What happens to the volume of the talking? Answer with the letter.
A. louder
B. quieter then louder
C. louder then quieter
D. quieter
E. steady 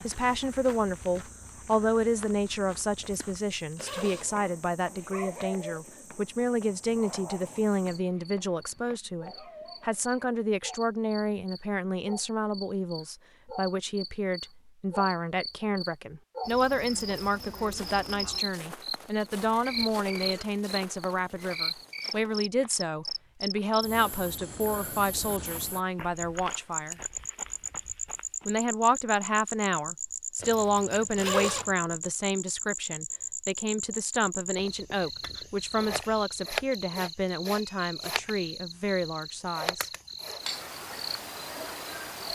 E.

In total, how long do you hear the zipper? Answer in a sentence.
The zipper can be heard for 4 seconds in total.